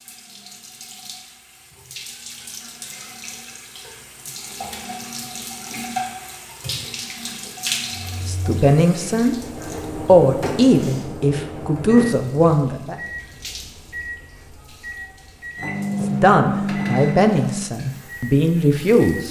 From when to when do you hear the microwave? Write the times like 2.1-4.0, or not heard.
7.9-19.2.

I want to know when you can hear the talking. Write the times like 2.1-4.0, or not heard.
8.2-9.3, 9.9-12.9, 15.9-19.2.